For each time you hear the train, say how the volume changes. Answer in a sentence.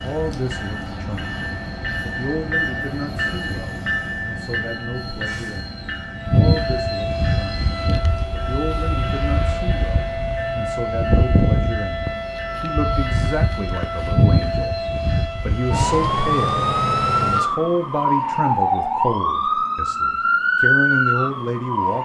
You can hear the train from 0.0 to 15.3 s, getting quieter.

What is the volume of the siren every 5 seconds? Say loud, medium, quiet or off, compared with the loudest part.
quiet, medium, loud, loud, loud.